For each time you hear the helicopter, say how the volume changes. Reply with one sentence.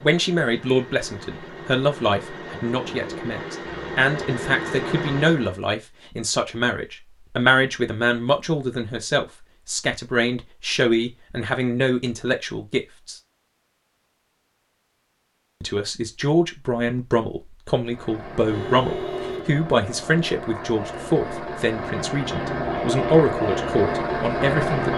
The helicopter can be heard from 0.0 to 5.6 s, getting louder; and from 17.8 to 24.9 s, getting louder.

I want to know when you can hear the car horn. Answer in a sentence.
The car horn can be heard from 18.5 to 19.6 s.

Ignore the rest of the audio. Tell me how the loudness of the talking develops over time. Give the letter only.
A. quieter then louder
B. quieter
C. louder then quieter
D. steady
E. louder
D.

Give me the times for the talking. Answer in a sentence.
You can hear the talking from 0.0 to 13.2 s and from 15.6 to 24.9 s.